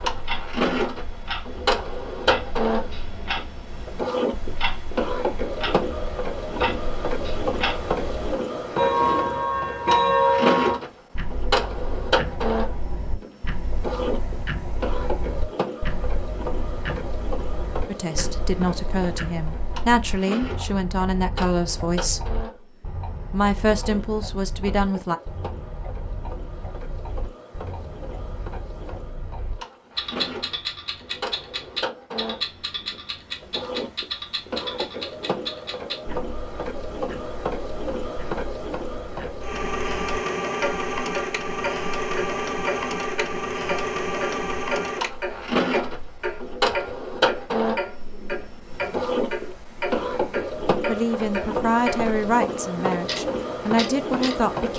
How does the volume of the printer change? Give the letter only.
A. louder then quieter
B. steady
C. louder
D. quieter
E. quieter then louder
E.